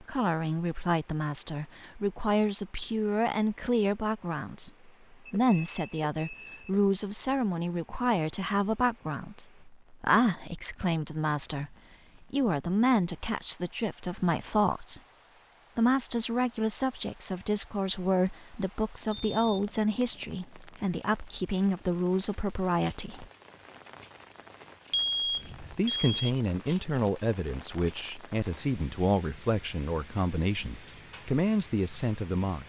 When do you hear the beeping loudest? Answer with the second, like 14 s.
25 s.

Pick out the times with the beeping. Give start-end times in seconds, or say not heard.
5.2-6.7, 19.1-19.7, 24.9-26.4.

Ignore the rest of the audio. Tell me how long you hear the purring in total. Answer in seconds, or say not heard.
not heard.